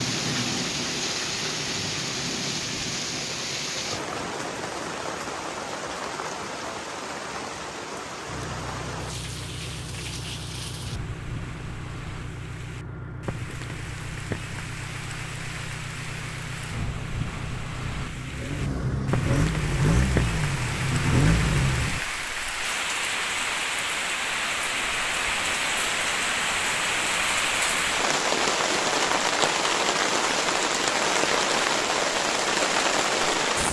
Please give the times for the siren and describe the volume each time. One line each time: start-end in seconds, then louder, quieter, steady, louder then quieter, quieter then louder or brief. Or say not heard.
not heard.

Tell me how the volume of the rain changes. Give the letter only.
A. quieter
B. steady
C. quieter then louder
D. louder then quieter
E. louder
C.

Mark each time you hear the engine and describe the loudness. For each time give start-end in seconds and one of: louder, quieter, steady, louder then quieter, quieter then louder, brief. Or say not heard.
8.2-22.4 louder.